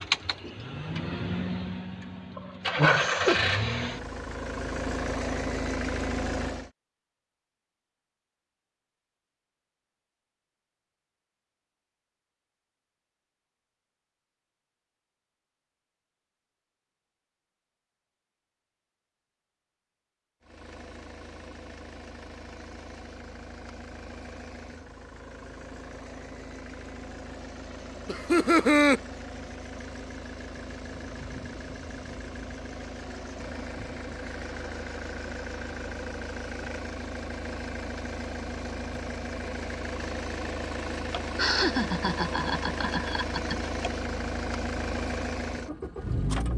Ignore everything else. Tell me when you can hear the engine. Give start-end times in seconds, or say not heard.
0.0-6.7, 20.4-46.5.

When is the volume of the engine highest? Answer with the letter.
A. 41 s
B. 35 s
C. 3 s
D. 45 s
C.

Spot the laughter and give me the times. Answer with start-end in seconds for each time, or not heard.
2.4-3.5, 28.1-29.0, 41.1-43.7.